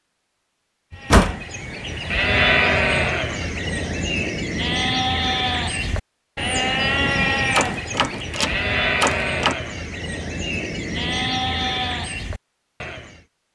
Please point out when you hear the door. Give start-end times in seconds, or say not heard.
0.9-1.4, 7.5-9.6.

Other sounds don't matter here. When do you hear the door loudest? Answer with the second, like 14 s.
1 s.